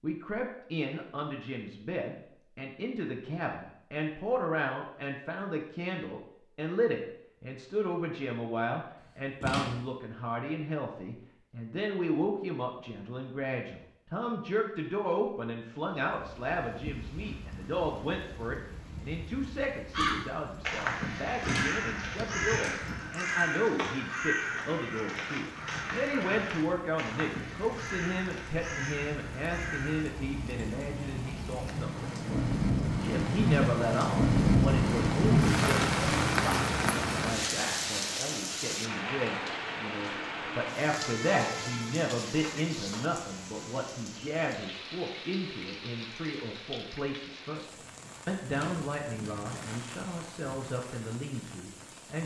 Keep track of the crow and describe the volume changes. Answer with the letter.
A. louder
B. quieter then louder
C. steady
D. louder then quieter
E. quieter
E.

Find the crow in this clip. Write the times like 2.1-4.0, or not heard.
19.9-30.1.